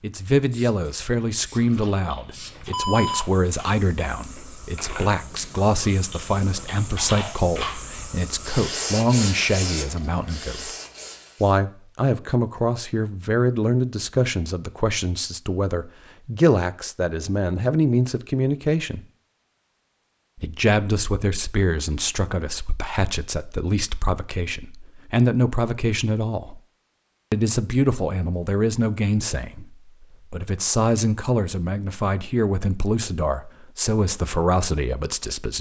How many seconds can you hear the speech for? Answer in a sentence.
You can hear the speech for 33 seconds altogether.